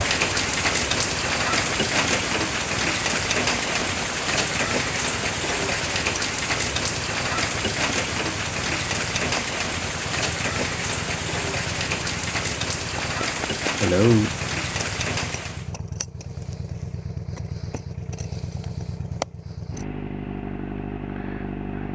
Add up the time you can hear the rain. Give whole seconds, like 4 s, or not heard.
16 s.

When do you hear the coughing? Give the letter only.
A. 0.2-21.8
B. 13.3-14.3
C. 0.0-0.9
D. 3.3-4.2
B.